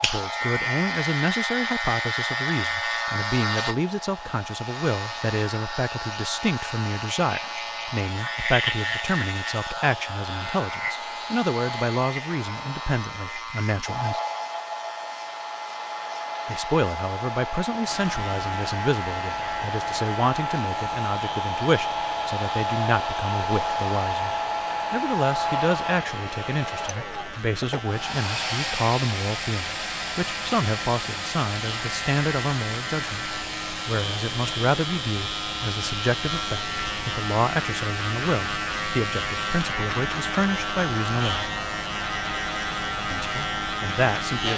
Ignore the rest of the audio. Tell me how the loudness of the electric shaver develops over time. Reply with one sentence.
The volume of the electric shaver goes down, then up.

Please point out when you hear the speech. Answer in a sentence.
The speech can be heard from 0.0 to 14.2 s, from 16.4 to 41.5 s and from 43.1 to 44.5 s.